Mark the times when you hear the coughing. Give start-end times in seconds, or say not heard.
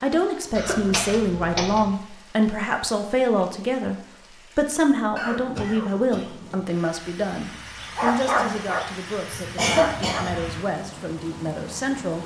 0.6-1.9, 5.2-6.3, 9.2-10.7.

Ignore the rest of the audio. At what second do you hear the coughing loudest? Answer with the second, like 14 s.
10 s.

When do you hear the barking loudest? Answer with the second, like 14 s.
8 s.